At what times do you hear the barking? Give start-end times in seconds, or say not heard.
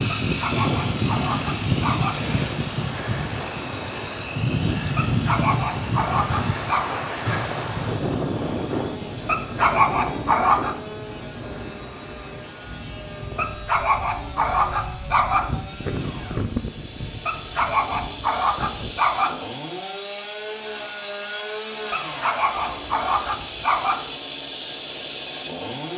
0.2-2.2, 5.0-7.0, 9.2-10.8, 13.3-15.6, 17.2-19.4, 21.9-24.1.